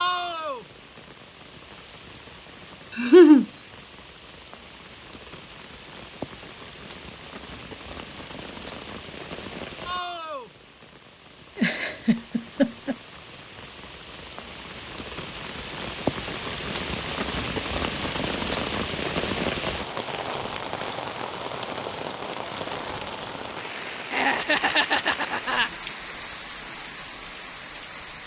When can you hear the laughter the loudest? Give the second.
3 s.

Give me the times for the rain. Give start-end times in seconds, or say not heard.
0.0-28.2.